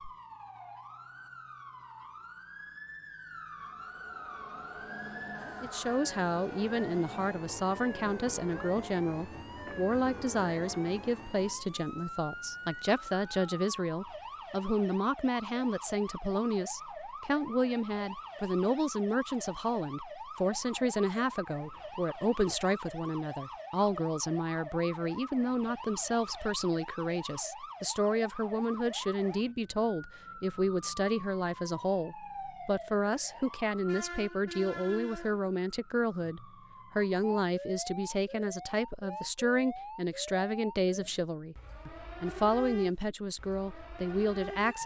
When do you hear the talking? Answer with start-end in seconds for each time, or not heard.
5.5-44.8.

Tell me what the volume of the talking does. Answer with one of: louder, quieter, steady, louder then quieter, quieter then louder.
steady.